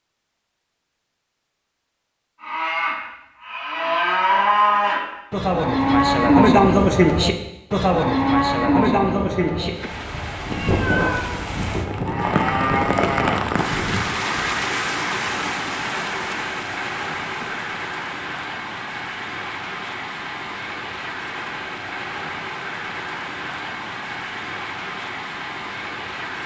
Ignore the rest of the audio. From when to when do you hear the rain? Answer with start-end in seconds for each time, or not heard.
9.7-26.4.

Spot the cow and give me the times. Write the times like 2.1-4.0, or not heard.
2.4-14.5.